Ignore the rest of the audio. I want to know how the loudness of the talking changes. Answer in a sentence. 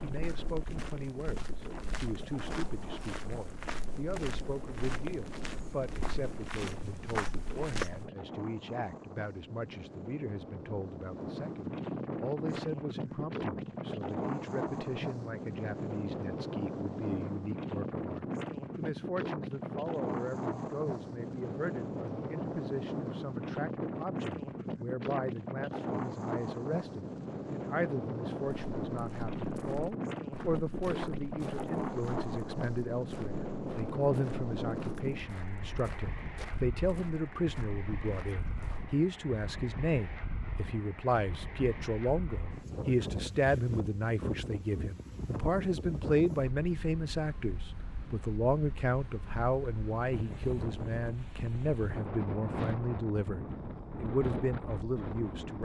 The volume of the talking goes up.